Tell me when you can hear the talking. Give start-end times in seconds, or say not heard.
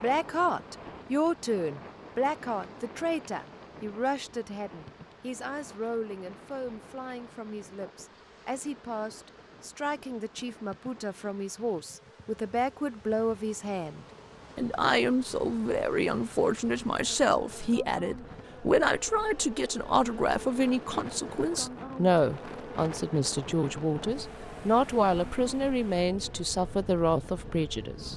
0.0-28.1.